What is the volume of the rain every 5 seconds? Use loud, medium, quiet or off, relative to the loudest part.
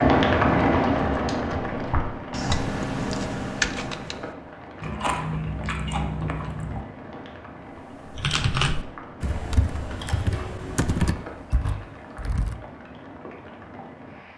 loud, quiet, quiet.